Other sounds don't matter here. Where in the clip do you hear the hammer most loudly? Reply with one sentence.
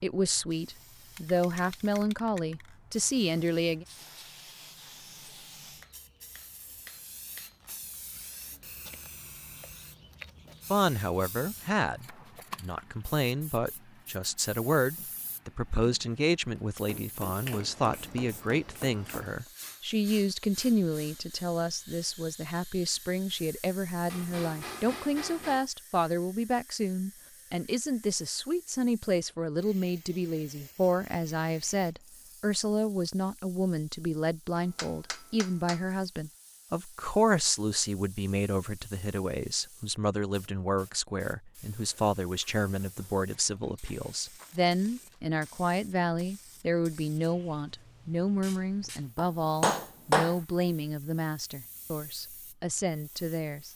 The loudest moment of the hammer is at 50 seconds.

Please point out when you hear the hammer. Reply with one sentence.
The hammer can be heard from 5.8 to 7.5 s, from 16.6 to 19.5 s, from 24.1 to 25.6 s, from 34.5 to 35.9 s and from 49.1 to 50.4 s.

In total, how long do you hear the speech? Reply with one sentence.
You can hear the speech for 47 seconds altogether.